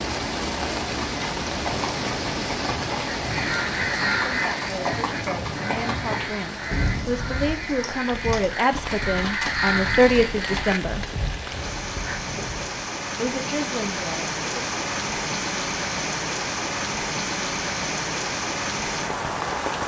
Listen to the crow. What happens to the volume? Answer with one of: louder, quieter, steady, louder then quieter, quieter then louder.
quieter then louder.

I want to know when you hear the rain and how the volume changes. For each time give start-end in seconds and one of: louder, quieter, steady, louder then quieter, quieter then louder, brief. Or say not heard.
0.0-19.8 quieter then louder.